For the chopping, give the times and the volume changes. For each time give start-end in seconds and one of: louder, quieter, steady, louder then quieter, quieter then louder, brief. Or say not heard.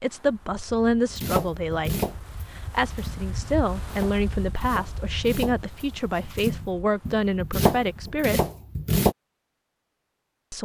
1.1-9.2 quieter then louder.